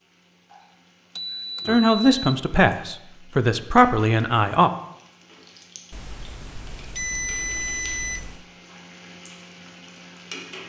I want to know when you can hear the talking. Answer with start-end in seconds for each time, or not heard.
1.6-4.7.